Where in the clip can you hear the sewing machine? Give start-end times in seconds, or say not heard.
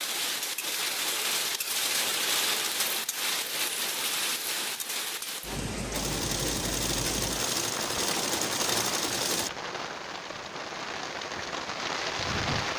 5.9-9.5.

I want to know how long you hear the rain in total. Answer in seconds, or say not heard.
13 s.